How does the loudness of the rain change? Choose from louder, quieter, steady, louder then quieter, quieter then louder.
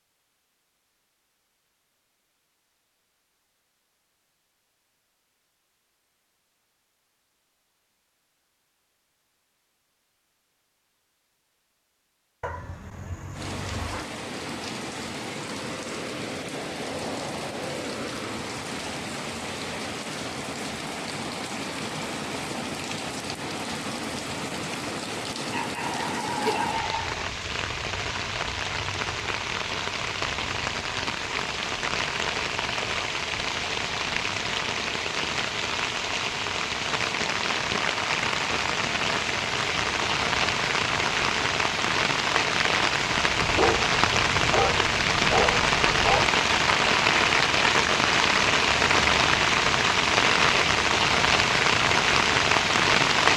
louder.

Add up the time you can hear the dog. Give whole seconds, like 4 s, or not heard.
6 s.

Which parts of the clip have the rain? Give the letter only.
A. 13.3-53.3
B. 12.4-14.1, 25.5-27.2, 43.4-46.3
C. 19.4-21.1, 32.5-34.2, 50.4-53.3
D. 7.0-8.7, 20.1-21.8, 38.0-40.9
A.